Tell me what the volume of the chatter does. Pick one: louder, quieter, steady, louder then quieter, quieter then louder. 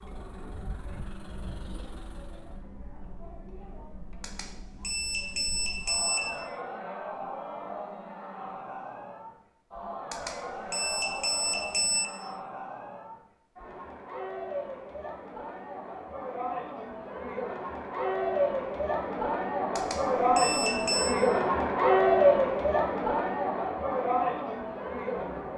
louder.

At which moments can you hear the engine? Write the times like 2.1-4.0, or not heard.
0.0-2.6.